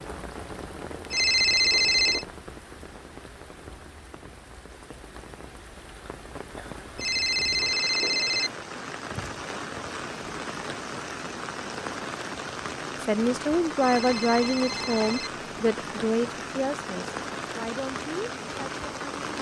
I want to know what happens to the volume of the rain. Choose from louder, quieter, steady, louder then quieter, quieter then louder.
louder.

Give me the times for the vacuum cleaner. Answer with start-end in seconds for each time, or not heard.
not heard.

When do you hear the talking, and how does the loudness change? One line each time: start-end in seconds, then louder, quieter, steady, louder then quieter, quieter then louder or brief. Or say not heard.
13.0-19.3 quieter.